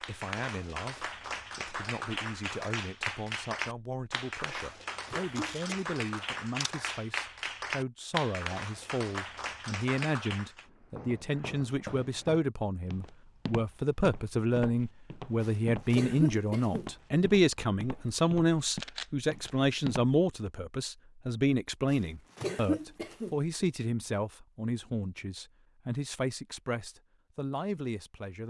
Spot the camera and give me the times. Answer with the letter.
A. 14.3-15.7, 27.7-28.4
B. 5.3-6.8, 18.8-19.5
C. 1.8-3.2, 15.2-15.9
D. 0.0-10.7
B.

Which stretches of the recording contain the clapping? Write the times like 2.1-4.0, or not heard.
0.0-10.7.